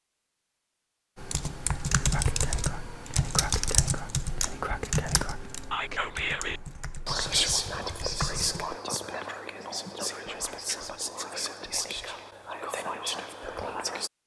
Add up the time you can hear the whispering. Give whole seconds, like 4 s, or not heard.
12 s.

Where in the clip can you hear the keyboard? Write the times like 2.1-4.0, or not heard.
1.1-8.8.